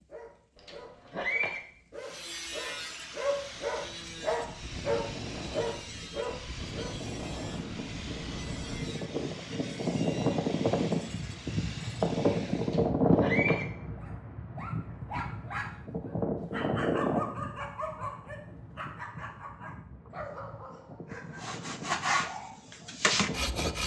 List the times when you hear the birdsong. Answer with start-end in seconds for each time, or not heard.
not heard.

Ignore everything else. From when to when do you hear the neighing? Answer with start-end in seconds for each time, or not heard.
0.6-1.6, 12.6-13.7.